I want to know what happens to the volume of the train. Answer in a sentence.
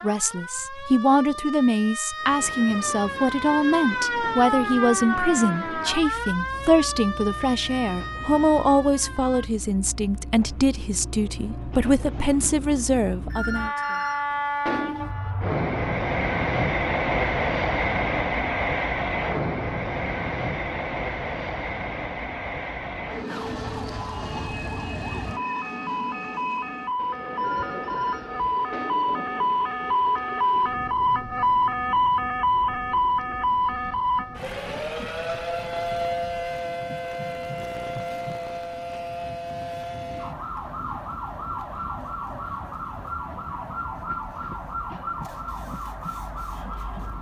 The loudness of the train goes up, then down.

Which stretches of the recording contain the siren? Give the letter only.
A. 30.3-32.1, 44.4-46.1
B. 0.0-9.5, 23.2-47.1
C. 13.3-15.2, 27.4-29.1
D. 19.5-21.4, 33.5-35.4
B.